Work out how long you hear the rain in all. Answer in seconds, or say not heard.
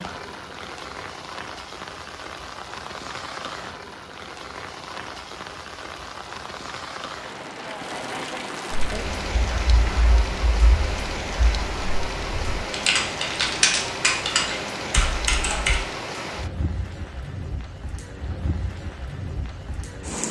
20 s.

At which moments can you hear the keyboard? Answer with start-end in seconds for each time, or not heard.
8.7-15.8.